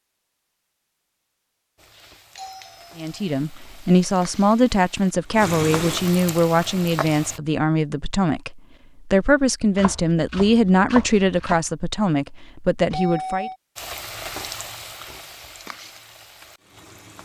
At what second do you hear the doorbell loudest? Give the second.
13 s.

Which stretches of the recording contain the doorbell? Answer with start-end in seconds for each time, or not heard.
2.4-3.1, 12.9-13.6.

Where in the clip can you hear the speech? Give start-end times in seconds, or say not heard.
3.0-13.5.